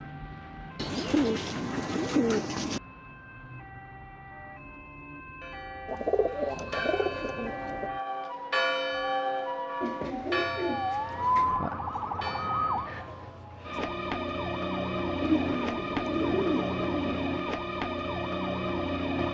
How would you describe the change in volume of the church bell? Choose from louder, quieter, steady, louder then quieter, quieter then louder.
louder then quieter.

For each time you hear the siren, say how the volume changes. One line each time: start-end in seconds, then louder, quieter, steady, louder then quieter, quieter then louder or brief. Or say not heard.
0.0-19.2 louder.